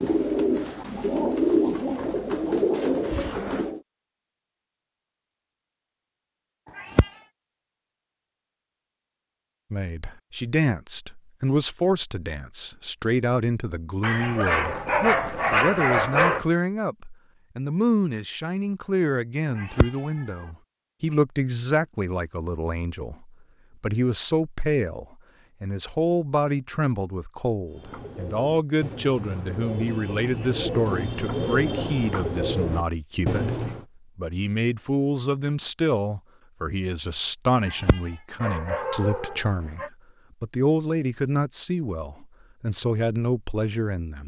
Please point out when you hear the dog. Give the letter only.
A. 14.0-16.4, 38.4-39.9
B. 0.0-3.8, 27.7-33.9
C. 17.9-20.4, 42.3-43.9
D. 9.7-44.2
A.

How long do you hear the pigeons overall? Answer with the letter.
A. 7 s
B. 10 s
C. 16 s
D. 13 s
B.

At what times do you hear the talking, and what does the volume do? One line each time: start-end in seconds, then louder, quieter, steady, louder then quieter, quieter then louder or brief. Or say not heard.
9.7-44.2 steady.